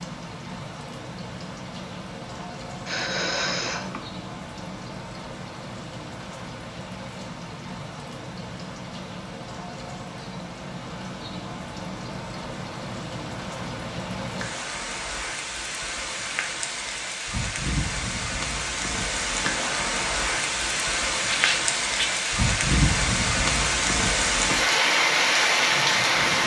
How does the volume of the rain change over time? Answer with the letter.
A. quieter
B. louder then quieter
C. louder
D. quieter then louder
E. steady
C.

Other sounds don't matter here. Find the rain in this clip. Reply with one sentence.
The rain can be heard from 0.0 to 26.4 s.